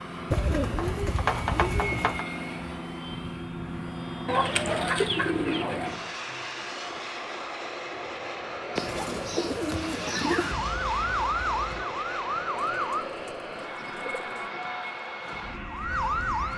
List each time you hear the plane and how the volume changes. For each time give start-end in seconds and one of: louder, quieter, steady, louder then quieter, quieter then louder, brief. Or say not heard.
0.0-16.5 steady.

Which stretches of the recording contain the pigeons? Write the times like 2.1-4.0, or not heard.
0.3-2.2, 4.2-6.0, 8.8-10.6, 12.8-14.5.